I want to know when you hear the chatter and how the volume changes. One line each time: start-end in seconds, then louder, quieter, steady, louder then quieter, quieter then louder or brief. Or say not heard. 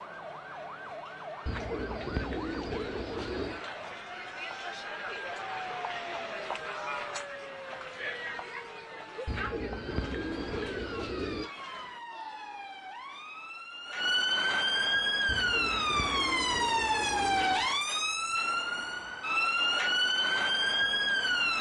0.0-12.8 louder then quieter.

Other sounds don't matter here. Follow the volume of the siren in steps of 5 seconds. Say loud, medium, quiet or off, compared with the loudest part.
quiet, quiet, medium, loud, loud.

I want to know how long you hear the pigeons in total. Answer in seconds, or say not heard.
7 s.